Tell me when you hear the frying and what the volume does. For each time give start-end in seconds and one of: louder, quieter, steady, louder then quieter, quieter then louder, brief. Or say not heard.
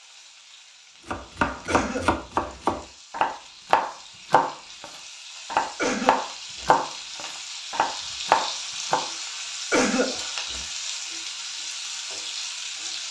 0.0-13.0 louder.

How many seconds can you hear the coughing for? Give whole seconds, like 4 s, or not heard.
3 s.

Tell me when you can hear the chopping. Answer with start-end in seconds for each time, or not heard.
1.1-9.1.